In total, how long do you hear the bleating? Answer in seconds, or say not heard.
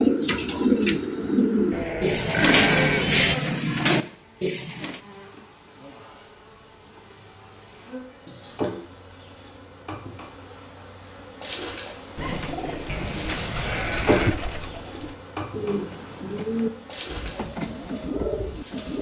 3 s.